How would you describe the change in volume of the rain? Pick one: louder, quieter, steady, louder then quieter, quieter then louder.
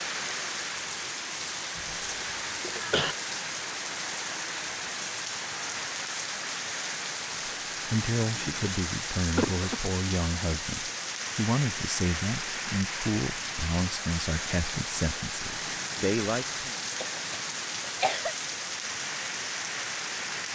steady.